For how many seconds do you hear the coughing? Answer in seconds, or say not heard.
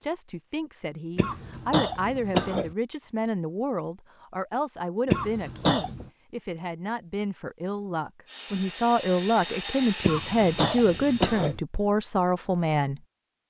4 s.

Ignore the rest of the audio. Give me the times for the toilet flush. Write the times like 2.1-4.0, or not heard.
not heard.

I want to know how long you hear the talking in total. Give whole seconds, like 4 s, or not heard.
13 s.